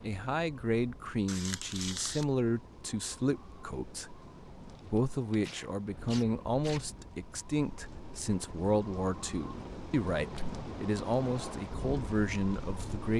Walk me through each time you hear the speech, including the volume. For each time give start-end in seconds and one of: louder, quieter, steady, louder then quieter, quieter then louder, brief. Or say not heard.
0.0-13.1 steady.